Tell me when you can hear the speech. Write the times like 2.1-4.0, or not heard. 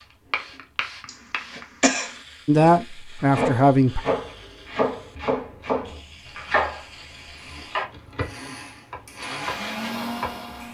2.5-4.0.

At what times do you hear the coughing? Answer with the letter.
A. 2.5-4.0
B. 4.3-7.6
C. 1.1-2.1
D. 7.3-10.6
C.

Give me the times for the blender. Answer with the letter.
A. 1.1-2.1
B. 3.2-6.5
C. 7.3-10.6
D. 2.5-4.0
C.